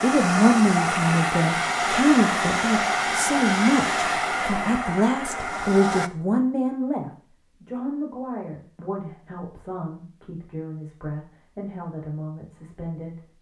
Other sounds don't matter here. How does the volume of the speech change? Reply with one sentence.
The loudness of the speech goes down.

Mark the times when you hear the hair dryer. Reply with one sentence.
The hair dryer can be heard from 0.0 to 6.1 s.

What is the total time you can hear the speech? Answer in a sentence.
You can hear the speech for 13 seconds altogether.